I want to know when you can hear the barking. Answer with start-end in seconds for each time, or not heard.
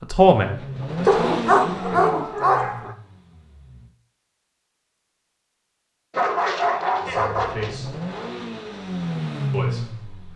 1.1-2.9, 6.1-7.8.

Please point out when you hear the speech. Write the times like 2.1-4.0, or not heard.
0.0-2.2, 7.0-8.0, 9.5-10.3.